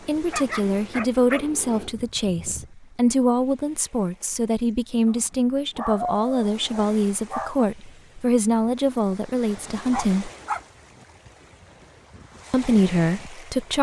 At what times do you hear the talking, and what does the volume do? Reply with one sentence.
You can hear the talking from 0.1 to 10.3 s, at a steady volume; and briefly from 12.5 to 13.7 s.